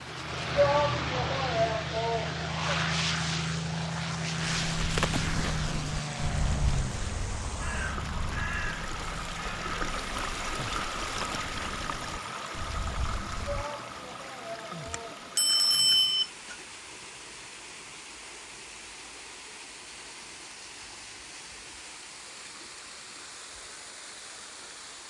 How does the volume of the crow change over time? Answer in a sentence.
The loudness of the crow goes down.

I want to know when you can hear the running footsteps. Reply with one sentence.
You can't hear the running footsteps here.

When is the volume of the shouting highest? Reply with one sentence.
The loudest moment of the shouting is at 1 second.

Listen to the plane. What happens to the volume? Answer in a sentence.
The loudness of the plane goes down.